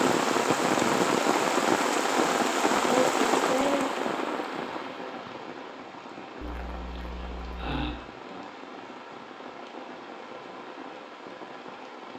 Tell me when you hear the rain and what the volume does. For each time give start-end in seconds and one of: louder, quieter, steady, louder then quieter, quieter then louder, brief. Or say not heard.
0.0-12.1 quieter.